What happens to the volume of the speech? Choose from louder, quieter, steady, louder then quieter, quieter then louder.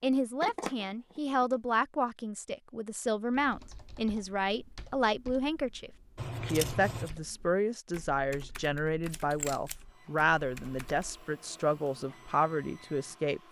steady.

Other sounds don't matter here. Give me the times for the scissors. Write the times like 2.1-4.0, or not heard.
0.0-1.6, 6.2-7.1, 9.1-9.8.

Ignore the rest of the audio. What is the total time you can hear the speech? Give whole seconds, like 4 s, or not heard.
13 s.